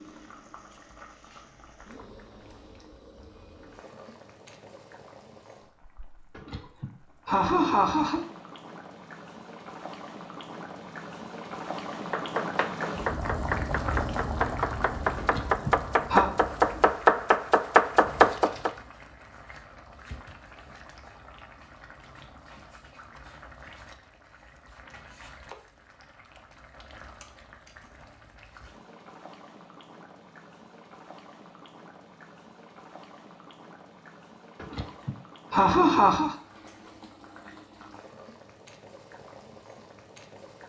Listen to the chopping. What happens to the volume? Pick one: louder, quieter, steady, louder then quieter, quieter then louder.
louder.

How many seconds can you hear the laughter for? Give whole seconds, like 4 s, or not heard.
5 s.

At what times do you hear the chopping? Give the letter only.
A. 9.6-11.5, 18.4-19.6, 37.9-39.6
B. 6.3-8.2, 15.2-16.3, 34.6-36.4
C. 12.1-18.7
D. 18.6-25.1
C.